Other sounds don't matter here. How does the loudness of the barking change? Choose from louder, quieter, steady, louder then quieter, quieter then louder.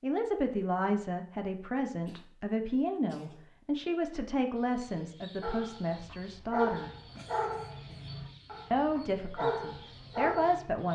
quieter then louder.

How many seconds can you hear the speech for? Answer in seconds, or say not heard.
9 s.